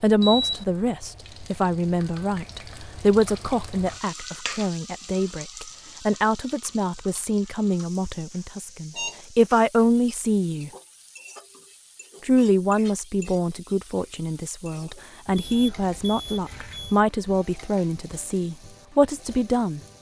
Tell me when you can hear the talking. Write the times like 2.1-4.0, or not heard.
0.0-10.7, 12.2-19.8.